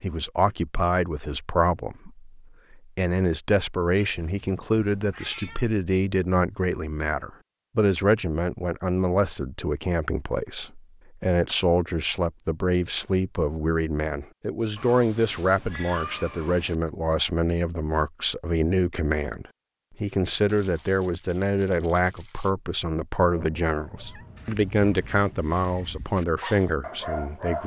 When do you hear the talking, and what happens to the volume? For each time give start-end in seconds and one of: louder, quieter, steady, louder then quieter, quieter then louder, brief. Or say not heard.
0.0-27.6 steady.